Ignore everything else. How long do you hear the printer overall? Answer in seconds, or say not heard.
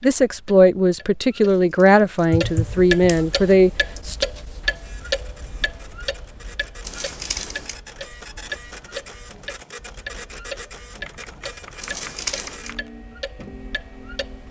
11 s.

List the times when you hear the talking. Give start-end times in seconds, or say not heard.
0.0-4.2.